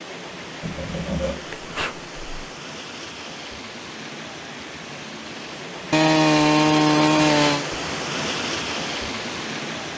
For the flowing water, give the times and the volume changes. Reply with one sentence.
The flowing water can be heard from 0.0 to 9.9 s, getting louder.